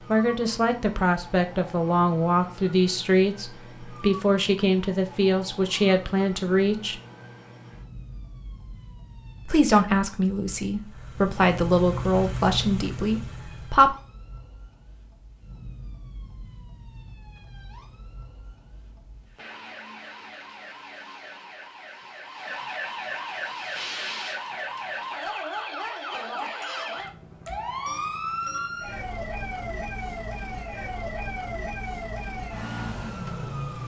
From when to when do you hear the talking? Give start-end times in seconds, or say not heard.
0.1-7.0, 9.4-13.9.